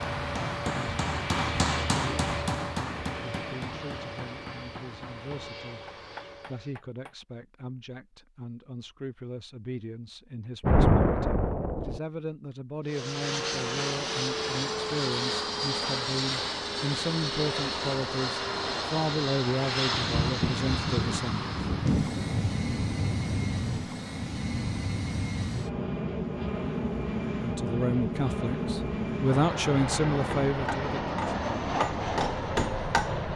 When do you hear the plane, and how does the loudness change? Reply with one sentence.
You can hear the plane from 0.0 to 6.8 s, getting quieter; and from 12.8 to 33.3 s, at a steady volume.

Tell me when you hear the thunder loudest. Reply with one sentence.
The loudest moment of the thunder is at 11 seconds.